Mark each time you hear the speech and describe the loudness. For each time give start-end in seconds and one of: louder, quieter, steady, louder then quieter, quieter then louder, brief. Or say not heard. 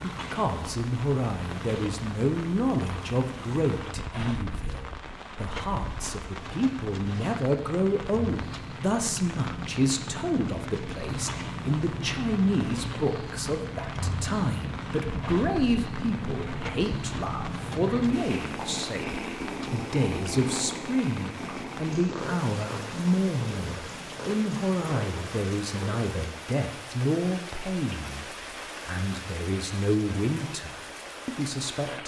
0.0-32.0 steady.